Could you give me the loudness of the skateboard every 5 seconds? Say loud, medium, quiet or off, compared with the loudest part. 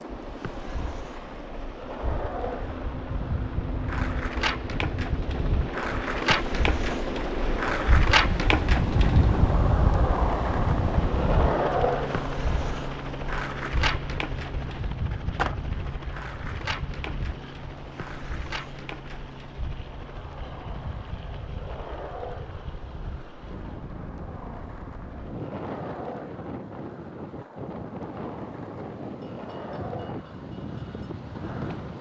medium, loud, loud, medium, quiet, quiet, quiet.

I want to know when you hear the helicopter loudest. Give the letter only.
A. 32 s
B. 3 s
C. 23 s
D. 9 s
D.